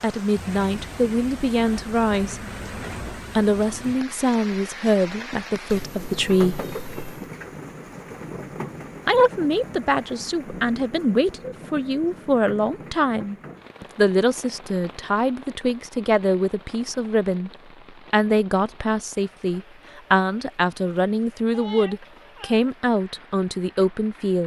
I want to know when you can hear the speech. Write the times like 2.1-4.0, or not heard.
0.0-2.4, 3.1-6.7, 9.1-17.5, 18.1-24.4.